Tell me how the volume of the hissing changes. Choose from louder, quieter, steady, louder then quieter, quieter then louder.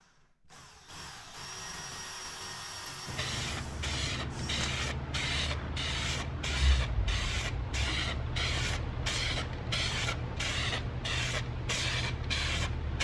steady.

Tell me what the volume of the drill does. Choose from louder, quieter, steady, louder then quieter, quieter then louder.
louder then quieter.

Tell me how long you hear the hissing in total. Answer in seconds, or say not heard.
10 s.